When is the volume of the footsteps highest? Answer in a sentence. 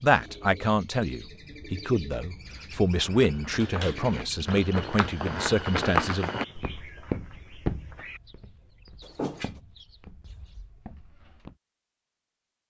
The loudest moment of the footsteps is at 6 seconds.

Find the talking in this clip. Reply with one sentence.
You can hear the talking from 0.0 to 6.3 s.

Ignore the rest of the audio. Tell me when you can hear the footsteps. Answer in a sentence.
You can hear the footsteps from 2.9 to 11.6 s.